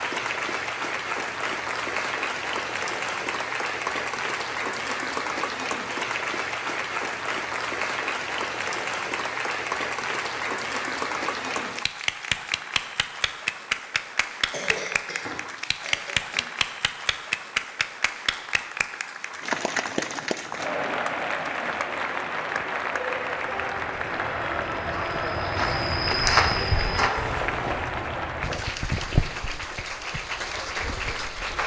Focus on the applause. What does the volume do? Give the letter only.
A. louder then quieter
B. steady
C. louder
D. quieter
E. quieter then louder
B.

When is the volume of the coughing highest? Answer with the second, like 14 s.
15 s.